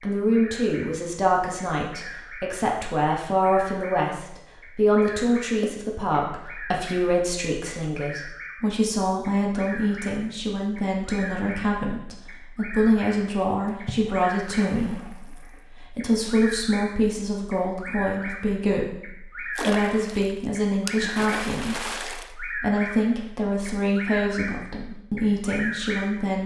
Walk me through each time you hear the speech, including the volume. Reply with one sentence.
You can hear the speech from 0.0 to 26.4 s, at a steady volume.